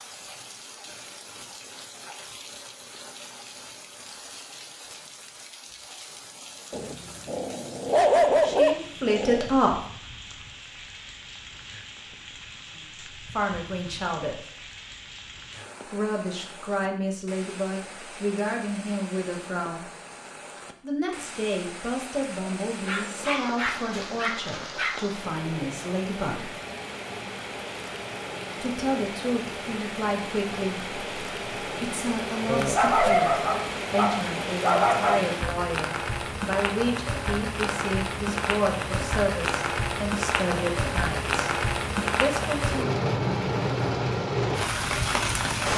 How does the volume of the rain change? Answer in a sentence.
The volume of the rain goes up.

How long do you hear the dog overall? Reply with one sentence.
You can hear the dog for 8 seconds altogether.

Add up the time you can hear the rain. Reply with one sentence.
You can hear the rain for 46 seconds altogether.